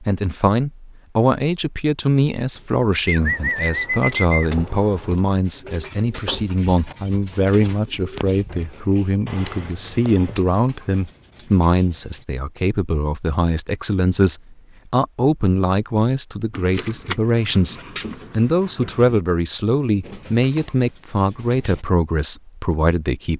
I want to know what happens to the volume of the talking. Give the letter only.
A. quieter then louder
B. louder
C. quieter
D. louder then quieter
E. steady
E.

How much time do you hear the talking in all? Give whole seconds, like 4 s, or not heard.
23 s.